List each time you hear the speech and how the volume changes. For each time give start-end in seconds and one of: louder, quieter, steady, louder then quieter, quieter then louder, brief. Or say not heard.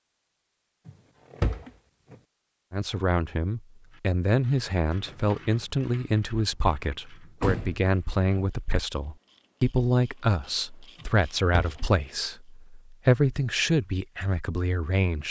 2.7-15.2 steady.